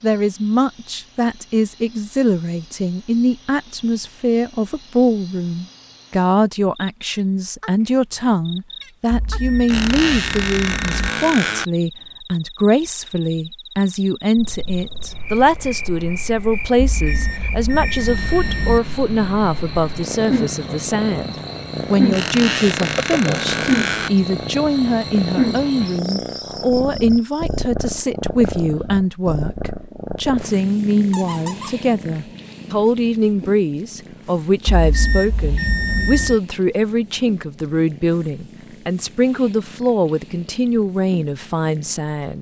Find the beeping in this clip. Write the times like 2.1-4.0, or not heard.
9.1-11.1, 16.8-18.8, 34.6-36.4.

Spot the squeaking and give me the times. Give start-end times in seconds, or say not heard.
9.7-11.7, 22.1-24.1, 31.1-31.8.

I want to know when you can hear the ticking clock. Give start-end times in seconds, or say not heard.
not heard.